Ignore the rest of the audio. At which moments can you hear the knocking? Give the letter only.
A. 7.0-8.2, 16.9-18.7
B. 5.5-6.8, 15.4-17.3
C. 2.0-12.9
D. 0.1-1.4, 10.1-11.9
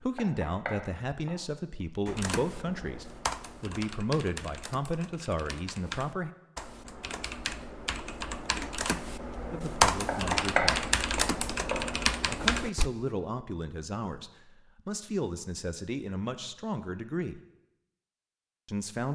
D.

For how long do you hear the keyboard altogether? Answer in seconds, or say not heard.
11 s.